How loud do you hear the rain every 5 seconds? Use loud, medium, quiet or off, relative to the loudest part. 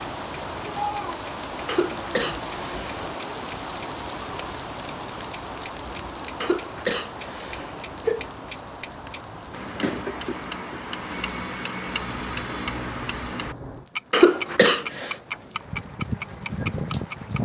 loud, medium, medium, loud.